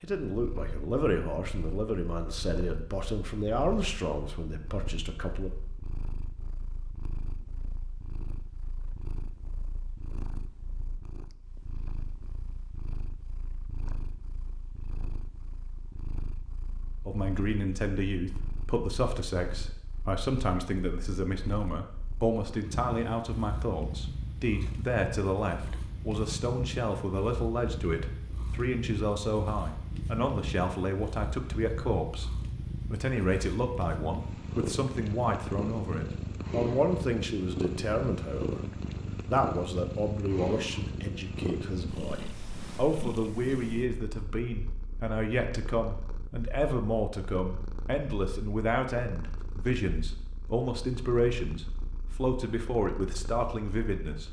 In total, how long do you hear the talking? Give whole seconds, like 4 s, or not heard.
43 s.